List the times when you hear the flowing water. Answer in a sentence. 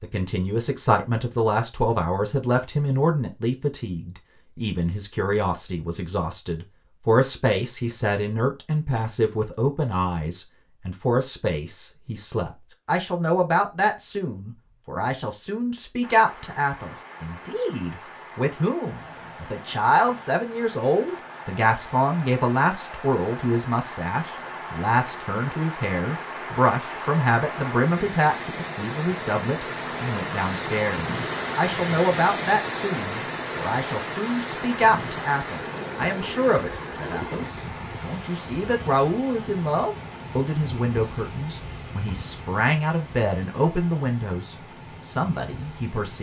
You can hear the flowing water from 16.0 to 46.1 s.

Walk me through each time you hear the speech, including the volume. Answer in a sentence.
The speech can be heard from 0.0 to 46.1 s, at a steady volume.